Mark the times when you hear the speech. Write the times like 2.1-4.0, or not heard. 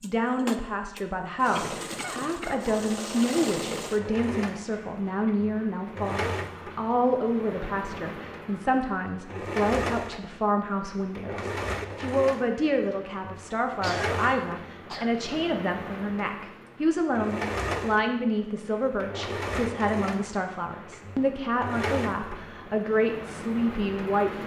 0.0-24.4.